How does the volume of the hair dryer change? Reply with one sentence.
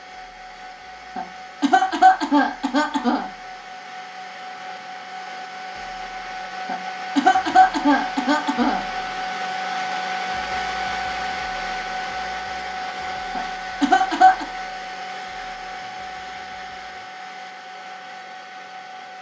The loudness of the hair dryer goes up, then down.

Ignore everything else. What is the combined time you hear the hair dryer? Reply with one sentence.
You can hear the hair dryer for 19 seconds altogether.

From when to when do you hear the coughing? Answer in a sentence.
The coughing can be heard from 1.1 to 3.2 s, from 6.7 to 8.8 s and from 13.3 to 14.4 s.